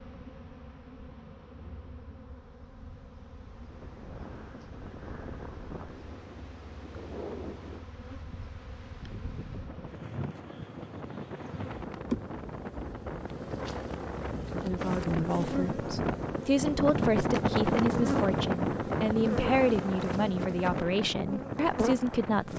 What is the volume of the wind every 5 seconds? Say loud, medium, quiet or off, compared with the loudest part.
quiet, quiet, medium, loud, medium.